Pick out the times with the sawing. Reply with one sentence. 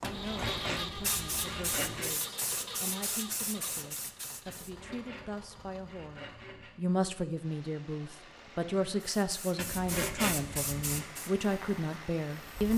You can hear the sawing from 0.0 to 2.1 s, from 4.5 to 6.7 s and from 9.6 to 11.1 s.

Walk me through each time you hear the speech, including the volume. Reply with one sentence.
You can hear the speech from 0.0 to 12.7 s, getting louder.